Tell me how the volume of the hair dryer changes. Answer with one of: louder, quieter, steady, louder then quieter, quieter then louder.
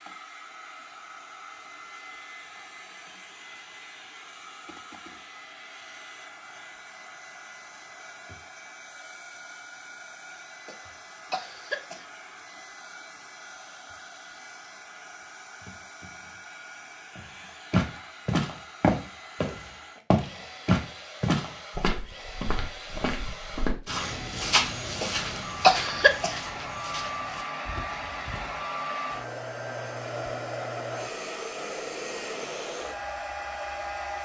louder.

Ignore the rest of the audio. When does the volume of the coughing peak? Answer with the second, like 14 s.
26 s.